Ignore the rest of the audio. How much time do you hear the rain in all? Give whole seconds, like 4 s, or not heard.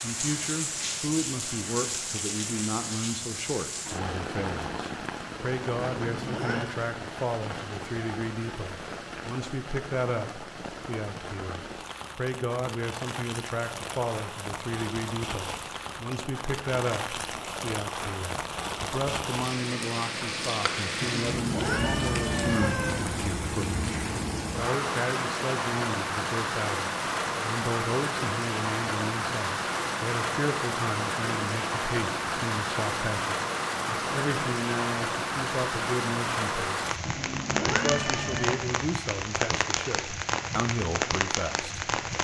42 s.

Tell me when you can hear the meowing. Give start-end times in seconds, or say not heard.
6.0-6.7, 21.0-23.0, 37.0-38.5.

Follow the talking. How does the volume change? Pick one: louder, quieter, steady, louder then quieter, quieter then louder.
steady.